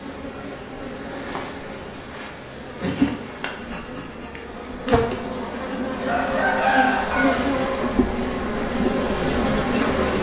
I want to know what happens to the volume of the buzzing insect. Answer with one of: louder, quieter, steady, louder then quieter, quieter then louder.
louder.